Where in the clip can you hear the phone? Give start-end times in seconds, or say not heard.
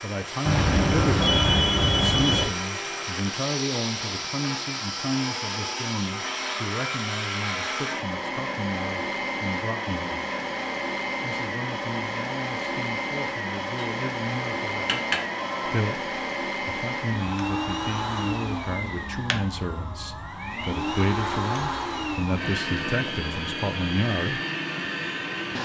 0.5-2.5, 14.7-15.8.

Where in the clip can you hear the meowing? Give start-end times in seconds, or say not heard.
not heard.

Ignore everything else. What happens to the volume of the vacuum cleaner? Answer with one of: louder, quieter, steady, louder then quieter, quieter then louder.
steady.